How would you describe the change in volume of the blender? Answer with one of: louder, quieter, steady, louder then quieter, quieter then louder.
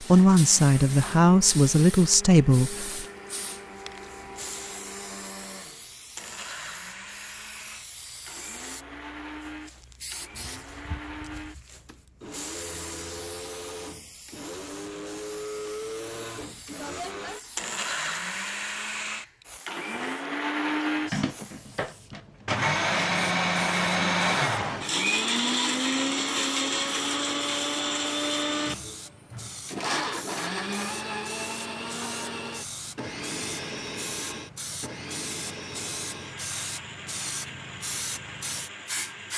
louder then quieter.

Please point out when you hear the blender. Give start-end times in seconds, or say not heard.
0.0-39.3.